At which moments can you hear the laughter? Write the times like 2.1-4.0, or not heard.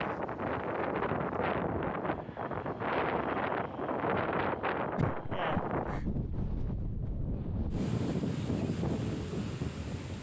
5.0-6.0.